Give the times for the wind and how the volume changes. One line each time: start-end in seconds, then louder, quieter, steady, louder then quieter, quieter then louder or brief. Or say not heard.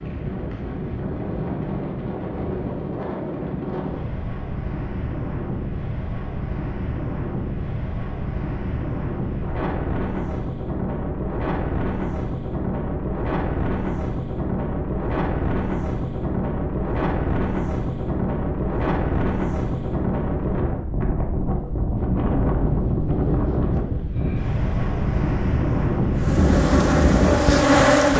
0.0-28.1 louder.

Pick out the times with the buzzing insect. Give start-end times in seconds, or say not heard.
26.1-28.1.